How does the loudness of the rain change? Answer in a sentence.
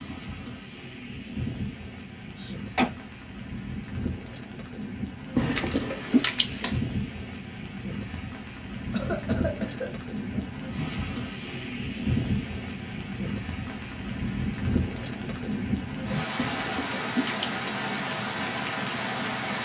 The volume of the rain goes up.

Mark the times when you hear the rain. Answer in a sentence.
You can hear the rain from 0.0 to 19.6 s.